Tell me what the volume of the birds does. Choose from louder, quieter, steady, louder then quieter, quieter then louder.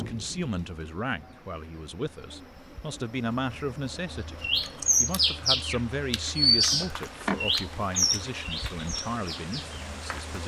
quieter.